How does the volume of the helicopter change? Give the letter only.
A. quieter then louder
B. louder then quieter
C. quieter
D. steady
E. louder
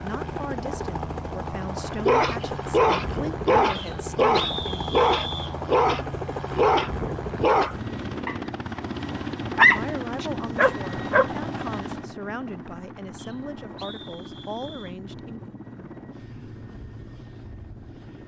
C.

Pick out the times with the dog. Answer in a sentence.
The dog can be heard from 2.0 to 11.3 s.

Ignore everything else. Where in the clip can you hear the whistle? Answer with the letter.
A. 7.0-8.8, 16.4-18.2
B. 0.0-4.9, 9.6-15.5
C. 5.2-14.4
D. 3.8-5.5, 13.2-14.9
D.